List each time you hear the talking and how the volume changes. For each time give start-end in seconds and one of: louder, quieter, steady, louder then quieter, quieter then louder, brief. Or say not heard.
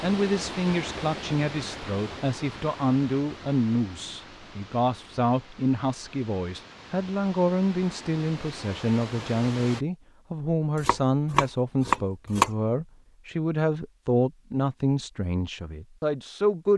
0.0-16.7 steady.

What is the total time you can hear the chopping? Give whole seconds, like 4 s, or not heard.
2 s.